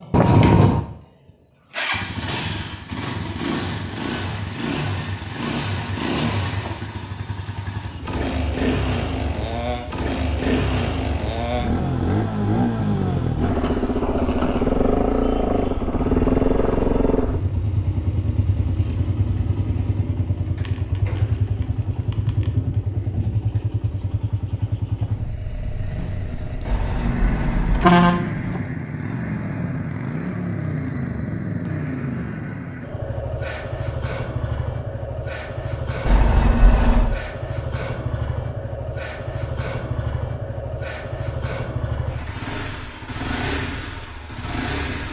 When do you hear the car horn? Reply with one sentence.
You can hear the car horn from 0.1 to 0.8 s, from 26.6 to 28.6 s and from 36.0 to 37.2 s.